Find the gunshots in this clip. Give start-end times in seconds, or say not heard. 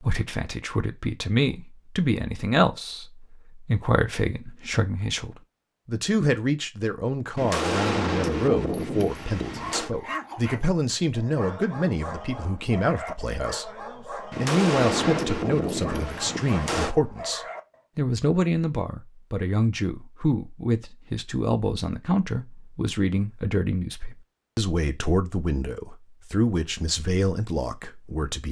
7.3-9.9, 14.3-16.9.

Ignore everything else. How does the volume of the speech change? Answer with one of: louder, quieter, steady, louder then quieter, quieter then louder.
steady.